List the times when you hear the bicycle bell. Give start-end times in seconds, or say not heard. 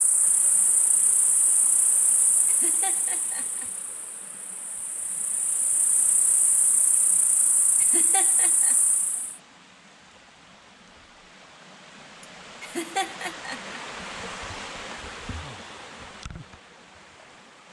not heard.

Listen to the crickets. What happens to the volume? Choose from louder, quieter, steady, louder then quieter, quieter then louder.
quieter then louder.